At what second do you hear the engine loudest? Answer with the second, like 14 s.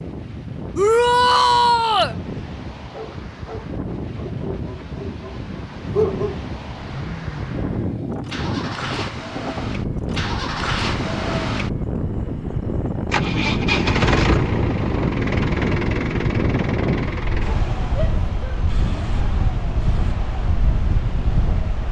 14 s.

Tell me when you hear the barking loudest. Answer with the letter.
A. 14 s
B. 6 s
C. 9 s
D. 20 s
B.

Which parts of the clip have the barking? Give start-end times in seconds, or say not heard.
2.9-6.4.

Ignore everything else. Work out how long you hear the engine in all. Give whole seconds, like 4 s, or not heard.
15 s.